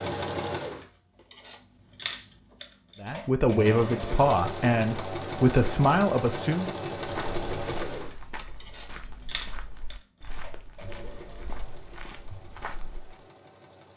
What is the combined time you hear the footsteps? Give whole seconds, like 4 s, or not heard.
6 s.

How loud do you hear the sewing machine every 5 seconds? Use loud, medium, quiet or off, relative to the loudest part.
loud, loud, quiet.